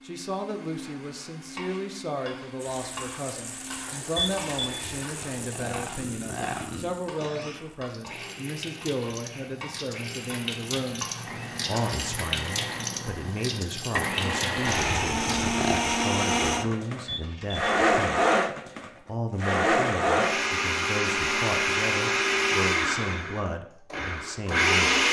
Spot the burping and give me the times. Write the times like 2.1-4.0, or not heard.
4.6-7.0, 14.7-15.8.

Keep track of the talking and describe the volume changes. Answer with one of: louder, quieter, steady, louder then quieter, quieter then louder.
steady.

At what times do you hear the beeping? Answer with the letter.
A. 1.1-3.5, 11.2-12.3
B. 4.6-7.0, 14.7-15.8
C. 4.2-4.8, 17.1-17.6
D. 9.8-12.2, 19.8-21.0
C.